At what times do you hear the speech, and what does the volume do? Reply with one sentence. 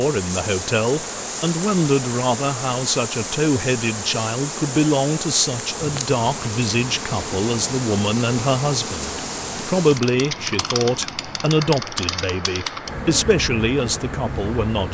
The speech can be heard from 0.0 to 14.8 s, at a steady volume.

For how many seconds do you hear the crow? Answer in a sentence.
You can't hear the crow here.